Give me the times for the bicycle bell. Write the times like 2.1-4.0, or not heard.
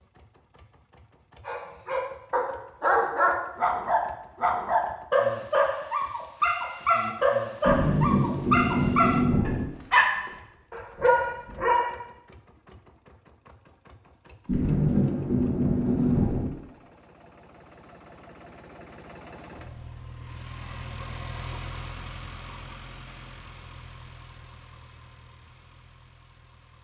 not heard.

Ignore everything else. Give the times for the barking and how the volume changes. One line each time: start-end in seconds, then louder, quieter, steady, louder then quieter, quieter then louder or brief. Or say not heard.
1.4-11.9 steady.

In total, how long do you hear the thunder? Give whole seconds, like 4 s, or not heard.
4 s.